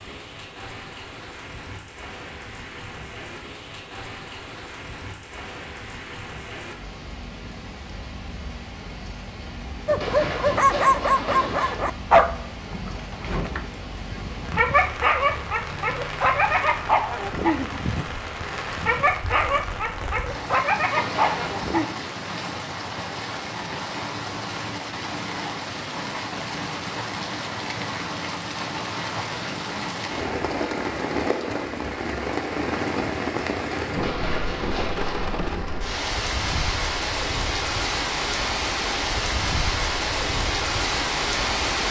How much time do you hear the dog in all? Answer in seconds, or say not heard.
12 s.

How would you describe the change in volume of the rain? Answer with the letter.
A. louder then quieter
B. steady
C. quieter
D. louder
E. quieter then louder
D.